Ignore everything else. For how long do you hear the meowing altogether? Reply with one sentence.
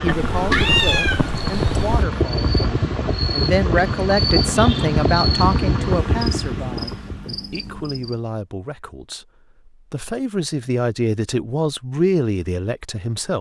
The meowing can be heard for 2 seconds in total.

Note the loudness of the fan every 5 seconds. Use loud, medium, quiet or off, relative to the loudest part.
loud, loud, off.